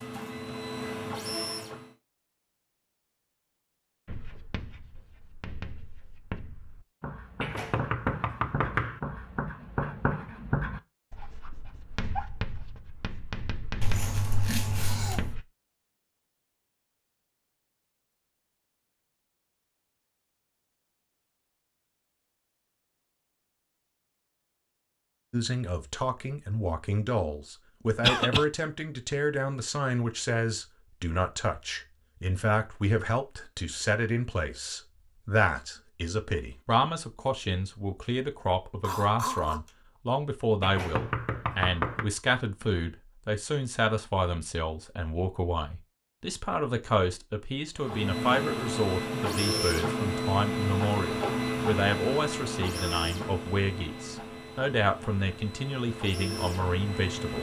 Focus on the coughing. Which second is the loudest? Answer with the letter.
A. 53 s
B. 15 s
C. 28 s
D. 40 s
C.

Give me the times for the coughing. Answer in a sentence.
The coughing can be heard from 13.8 to 15.3 s, from 28.0 to 28.4 s and from 38.8 to 39.7 s.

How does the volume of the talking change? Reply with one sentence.
The volume of the talking stays about the same.